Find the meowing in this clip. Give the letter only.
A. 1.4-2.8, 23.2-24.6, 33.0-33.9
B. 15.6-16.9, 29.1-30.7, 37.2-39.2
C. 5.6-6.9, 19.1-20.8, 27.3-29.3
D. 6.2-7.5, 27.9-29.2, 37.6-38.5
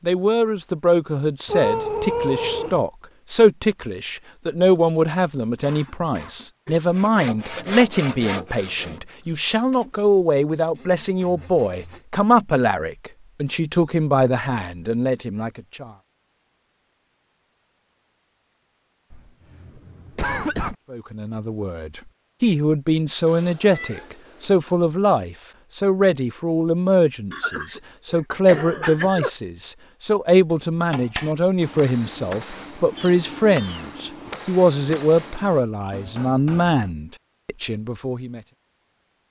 A.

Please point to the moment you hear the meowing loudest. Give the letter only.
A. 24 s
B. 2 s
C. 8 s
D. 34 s
B.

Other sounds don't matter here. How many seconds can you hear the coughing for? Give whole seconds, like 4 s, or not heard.
5 s.